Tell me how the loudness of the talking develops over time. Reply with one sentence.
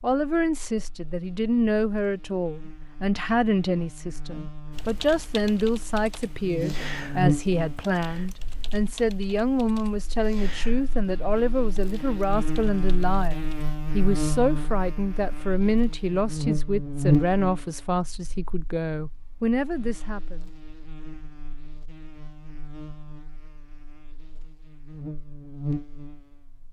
The volume of the talking stays about the same.